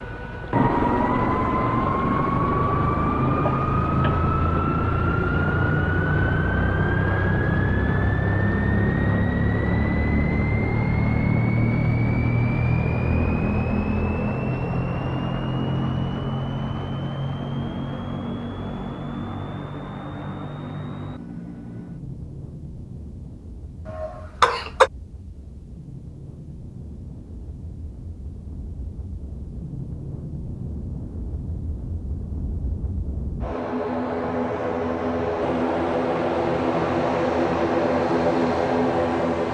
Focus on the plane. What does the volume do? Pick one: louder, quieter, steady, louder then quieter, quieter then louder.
quieter then louder.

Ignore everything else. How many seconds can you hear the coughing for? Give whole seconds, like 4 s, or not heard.
2 s.